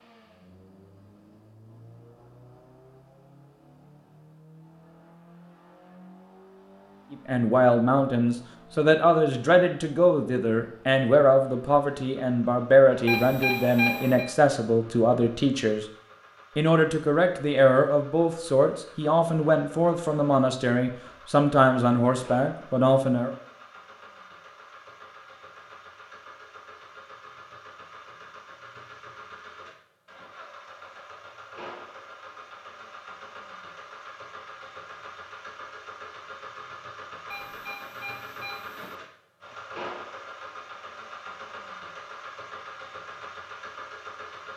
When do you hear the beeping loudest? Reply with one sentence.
The volume of the beeping peaks at 14 seconds.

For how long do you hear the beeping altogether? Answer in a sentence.
You can hear the beeping for 3 seconds altogether.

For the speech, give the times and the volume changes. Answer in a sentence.
You can hear the speech from 7.1 to 15.8 s, at a steady volume; and from 16.6 to 23.3 s, at a steady volume.